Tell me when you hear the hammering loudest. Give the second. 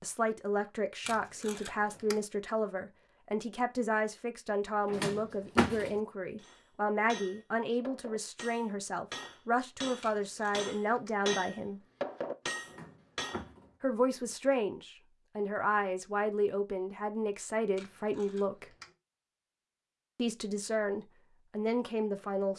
12 s.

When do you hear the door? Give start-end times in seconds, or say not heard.
4.9-6.0, 12.7-13.7.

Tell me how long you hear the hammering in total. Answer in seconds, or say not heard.
7 s.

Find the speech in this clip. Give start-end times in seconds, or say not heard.
0.0-11.8, 13.8-18.8, 20.1-22.5.